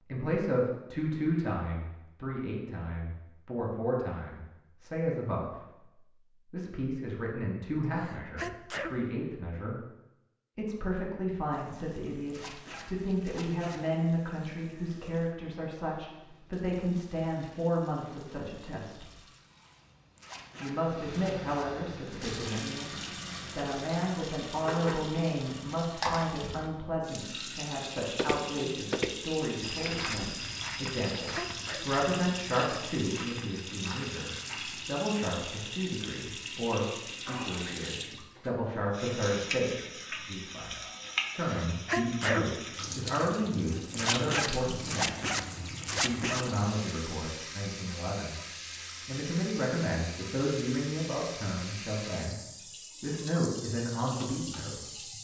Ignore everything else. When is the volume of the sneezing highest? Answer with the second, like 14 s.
42 s.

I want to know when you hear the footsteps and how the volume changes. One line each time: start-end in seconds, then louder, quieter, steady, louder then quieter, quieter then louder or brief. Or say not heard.
28.1-35.0 quieter.